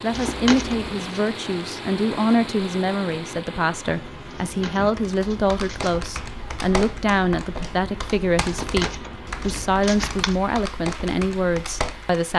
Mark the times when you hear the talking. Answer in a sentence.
You can hear the talking from 0.0 to 12.3 s.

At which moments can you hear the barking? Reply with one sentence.
You can't hear the barking here.